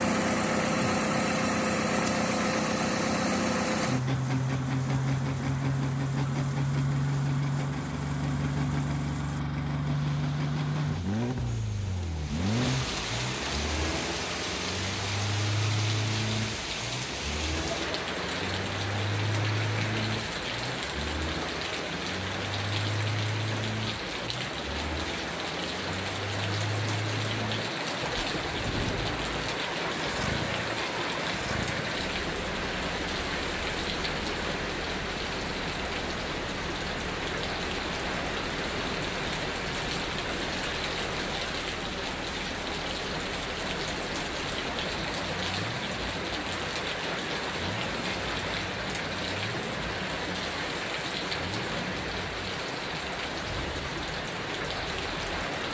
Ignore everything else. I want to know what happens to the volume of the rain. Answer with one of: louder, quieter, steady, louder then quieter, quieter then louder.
louder.